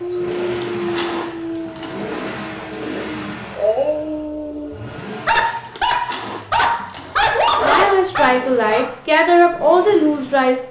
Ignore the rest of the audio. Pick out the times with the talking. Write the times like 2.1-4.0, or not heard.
7.6-10.6.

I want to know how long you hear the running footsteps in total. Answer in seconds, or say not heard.
not heard.